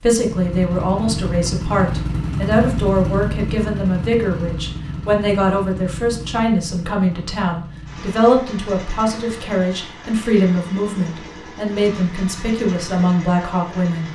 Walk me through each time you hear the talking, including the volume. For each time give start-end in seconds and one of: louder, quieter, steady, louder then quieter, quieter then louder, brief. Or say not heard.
0.0-14.1 steady.